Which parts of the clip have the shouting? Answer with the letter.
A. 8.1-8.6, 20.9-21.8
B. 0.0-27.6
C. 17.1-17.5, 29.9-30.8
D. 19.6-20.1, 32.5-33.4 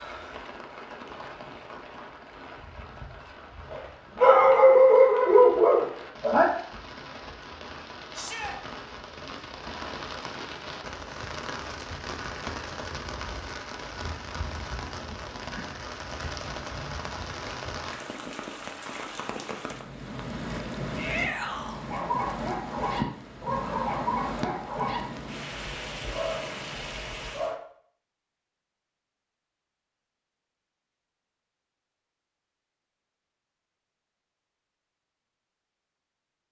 A.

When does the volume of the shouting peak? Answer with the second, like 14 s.
21 s.